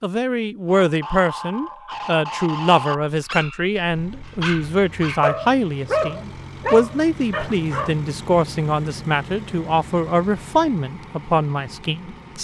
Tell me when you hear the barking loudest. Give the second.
6 s.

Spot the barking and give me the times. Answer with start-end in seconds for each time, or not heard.
0.7-8.1.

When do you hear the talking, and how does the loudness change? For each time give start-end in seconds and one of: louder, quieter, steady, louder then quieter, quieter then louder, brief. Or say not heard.
0.0-12.3 steady.